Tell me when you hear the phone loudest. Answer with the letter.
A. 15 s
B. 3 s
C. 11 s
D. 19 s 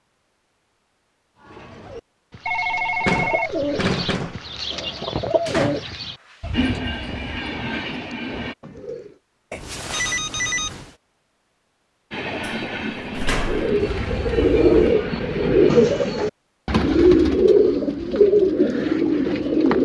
B.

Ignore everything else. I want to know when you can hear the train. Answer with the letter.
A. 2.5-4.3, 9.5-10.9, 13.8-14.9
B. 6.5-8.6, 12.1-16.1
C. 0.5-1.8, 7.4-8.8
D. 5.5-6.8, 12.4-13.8
B.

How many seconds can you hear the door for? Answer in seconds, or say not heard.
3 s.